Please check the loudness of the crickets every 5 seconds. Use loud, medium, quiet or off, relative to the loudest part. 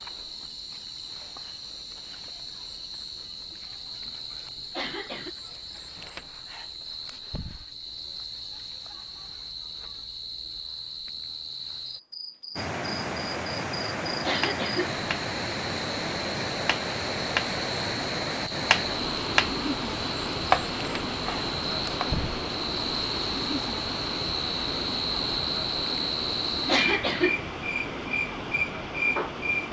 medium, medium, medium, medium, loud, loud.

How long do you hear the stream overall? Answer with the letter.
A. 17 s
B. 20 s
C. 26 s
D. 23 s
A.